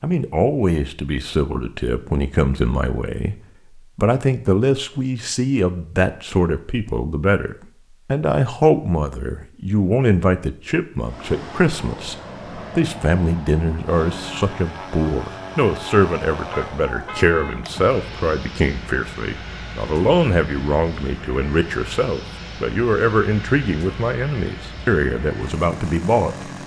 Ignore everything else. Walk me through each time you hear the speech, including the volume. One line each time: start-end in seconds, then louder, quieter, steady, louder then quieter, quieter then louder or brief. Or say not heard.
0.0-26.5 steady.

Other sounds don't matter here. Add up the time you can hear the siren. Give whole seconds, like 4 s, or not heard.
not heard.